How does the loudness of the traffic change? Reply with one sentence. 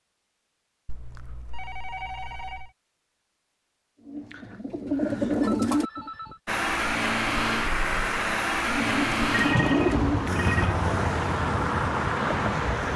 The volume of the traffic stays about the same.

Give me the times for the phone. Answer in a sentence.
The phone can be heard from 0.8 to 2.7 s, from 4.8 to 6.4 s and from 9.3 to 10.8 s.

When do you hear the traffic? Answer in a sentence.
You can hear the traffic from 6.5 to 12.9 s.